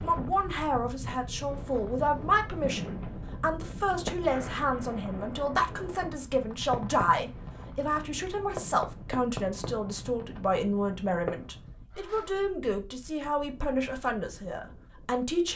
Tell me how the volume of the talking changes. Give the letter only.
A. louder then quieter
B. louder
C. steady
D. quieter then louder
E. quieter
C.